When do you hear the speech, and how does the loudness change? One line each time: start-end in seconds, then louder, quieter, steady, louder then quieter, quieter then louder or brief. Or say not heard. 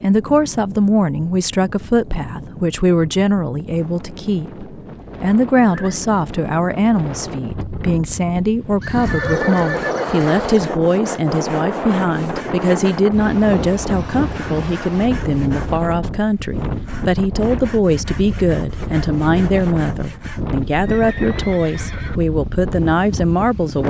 0.0-23.8 steady.